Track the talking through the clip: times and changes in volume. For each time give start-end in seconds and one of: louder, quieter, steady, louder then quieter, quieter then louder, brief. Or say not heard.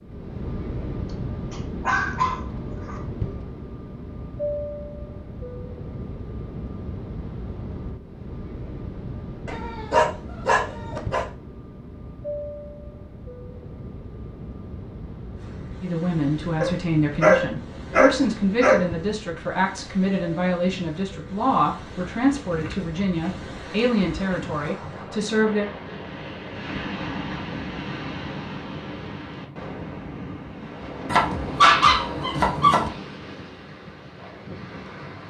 15.8-25.6 steady.